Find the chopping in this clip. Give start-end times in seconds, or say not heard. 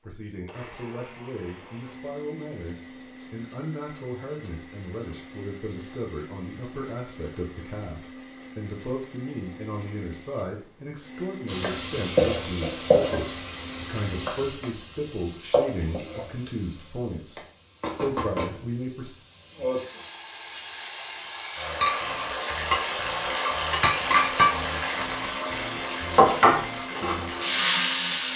not heard.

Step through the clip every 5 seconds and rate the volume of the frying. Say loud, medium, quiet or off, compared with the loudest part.
off, off, loud, medium, loud, loud.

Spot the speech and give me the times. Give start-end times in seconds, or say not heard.
0.0-19.1.